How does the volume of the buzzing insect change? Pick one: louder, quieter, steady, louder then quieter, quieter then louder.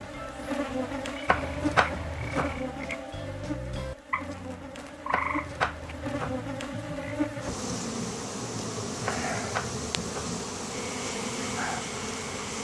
quieter then louder.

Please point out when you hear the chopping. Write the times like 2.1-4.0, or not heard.
1.2-2.5, 5.1-6.4, 9.1-10.3.